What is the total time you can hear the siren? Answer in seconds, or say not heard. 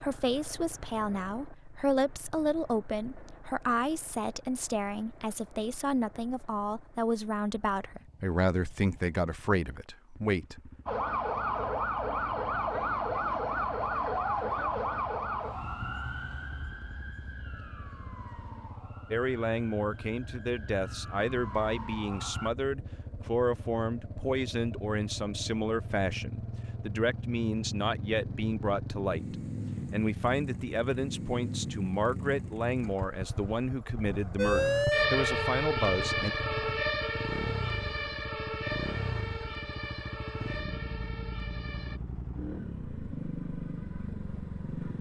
19 s.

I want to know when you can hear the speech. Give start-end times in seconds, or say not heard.
0.0-10.7, 19.1-36.4.